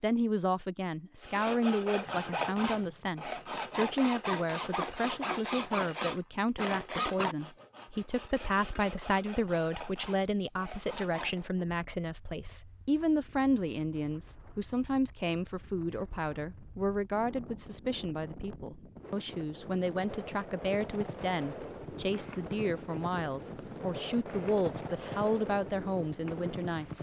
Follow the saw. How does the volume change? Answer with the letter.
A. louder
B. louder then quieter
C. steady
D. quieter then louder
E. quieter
E.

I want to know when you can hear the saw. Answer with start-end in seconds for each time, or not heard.
1.2-11.4.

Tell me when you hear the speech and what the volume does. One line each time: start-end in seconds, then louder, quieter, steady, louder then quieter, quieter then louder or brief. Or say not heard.
0.0-26.9 steady.